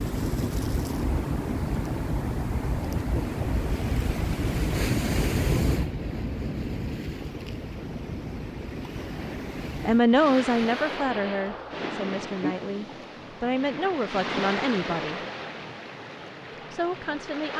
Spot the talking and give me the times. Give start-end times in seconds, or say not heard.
9.8-15.2, 16.7-17.5.